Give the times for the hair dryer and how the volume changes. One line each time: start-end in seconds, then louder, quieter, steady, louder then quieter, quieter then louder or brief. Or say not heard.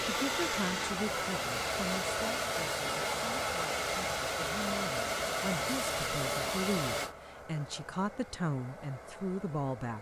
0.0-9.9 quieter.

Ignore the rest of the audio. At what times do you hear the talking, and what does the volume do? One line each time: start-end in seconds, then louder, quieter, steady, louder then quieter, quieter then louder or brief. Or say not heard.
0.1-9.9 quieter then louder.